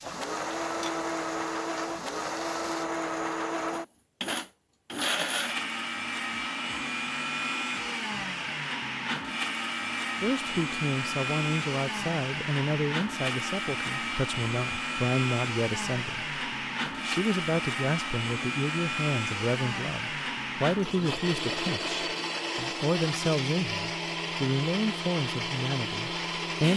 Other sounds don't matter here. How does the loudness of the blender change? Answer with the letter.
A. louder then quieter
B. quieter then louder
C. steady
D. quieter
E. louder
C.